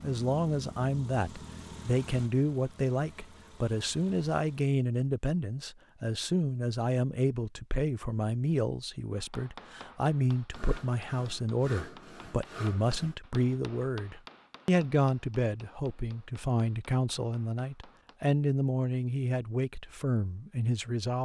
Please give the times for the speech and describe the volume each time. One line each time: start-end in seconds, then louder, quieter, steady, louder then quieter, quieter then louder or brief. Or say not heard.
0.0-21.2 steady.